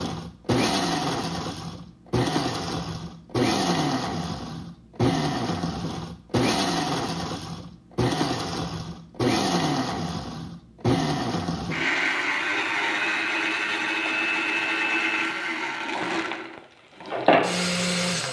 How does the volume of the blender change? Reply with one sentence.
The loudness of the blender stays about the same.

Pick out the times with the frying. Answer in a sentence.
You can hear the frying from 15.8 to 18.2 s.